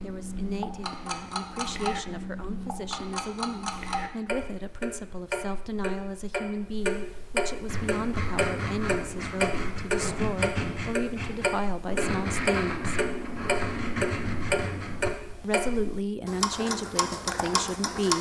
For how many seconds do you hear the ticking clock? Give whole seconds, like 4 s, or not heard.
18 s.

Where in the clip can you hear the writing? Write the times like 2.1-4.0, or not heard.
7.7-15.1.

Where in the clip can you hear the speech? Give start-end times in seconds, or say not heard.
0.0-12.9, 15.4-18.1.